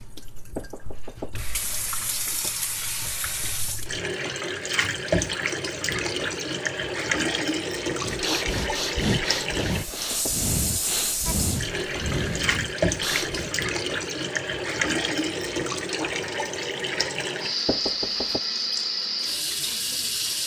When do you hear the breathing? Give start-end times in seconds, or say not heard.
8.0-13.6.